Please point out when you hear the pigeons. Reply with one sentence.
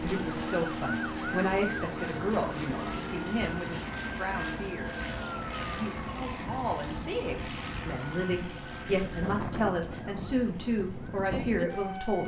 The pigeons can't be heard in this clip.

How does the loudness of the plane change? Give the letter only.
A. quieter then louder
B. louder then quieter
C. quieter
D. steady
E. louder
C.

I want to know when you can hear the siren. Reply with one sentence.
The siren can be heard from 0.0 to 12.2 s.